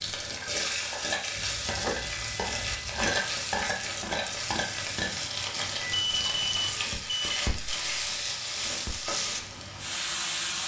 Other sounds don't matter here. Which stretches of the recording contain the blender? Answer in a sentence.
The blender can't be heard in this clip.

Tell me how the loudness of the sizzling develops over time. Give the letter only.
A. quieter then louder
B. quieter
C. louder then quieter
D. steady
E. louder
D.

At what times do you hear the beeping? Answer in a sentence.
You can hear the beeping from 1.4 to 3.1 s and from 5.5 to 7.4 s.